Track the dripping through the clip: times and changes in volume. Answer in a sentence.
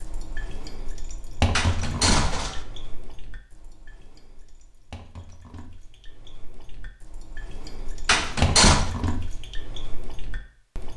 The dripping can be heard from 0.0 to 10.9 s, getting quieter then louder.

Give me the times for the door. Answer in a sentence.
The door can be heard from 1.6 to 2.6 s and from 8.1 to 8.9 s.